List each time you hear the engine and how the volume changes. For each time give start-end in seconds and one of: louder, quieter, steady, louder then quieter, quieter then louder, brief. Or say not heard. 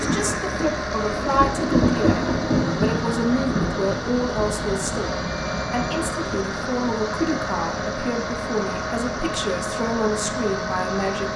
0.0-11.3 steady.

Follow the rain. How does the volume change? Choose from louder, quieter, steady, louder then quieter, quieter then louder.
louder then quieter.